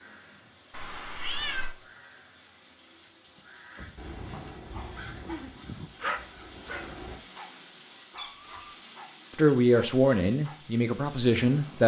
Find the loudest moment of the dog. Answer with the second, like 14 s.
6 s.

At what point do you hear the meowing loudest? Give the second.
1 s.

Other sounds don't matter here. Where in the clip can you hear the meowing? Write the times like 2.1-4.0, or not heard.
0.7-1.8, 8.2-8.8.